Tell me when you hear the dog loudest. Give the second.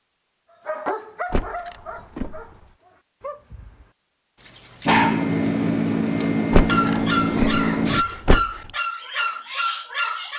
5 s.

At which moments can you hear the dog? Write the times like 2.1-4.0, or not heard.
0.7-10.3.